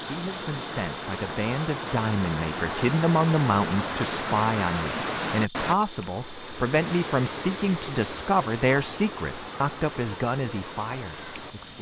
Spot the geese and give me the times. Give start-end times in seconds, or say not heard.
not heard.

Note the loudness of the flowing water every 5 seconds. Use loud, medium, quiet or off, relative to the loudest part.
loud, loud, medium.